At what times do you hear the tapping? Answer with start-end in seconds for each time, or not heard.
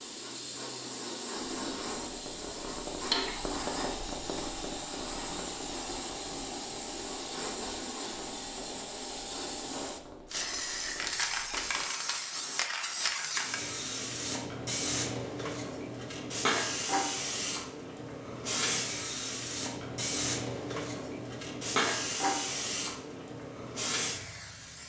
1.3-11.8.